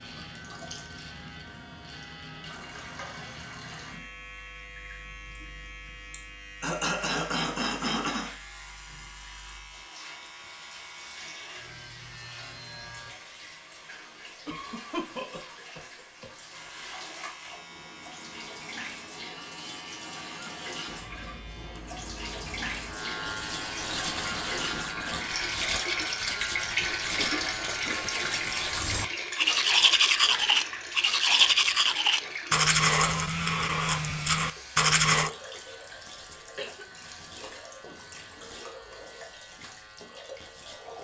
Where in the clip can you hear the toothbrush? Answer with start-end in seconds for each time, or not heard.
23.9-35.3.